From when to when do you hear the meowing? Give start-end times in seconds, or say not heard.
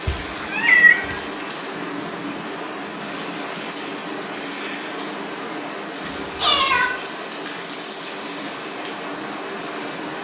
0.1-1.2, 6.0-6.9.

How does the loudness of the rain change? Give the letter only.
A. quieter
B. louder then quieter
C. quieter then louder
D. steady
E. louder
D.